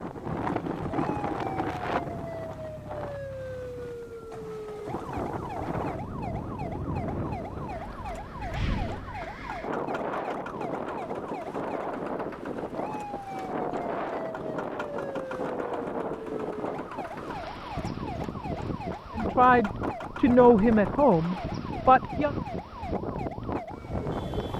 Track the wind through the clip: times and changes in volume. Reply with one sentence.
The wind can be heard from 0.0 to 24.5 s, at a steady volume.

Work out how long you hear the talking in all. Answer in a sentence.
The talking can be heard for 3 seconds in total.